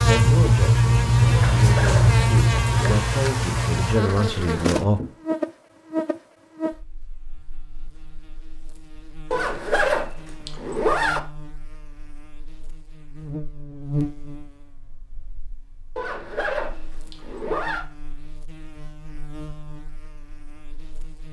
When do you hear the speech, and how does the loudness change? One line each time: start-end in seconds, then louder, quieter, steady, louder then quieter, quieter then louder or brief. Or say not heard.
0.0-5.0 louder.